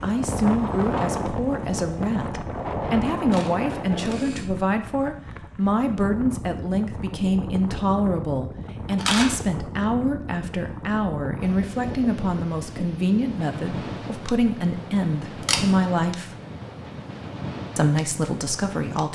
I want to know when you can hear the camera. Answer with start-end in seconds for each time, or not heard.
3.3-4.5, 8.9-9.3, 15.3-15.8.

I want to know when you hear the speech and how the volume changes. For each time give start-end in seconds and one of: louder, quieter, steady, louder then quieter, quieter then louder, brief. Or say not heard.
0.0-16.3 steady
17.8-19.0 brief.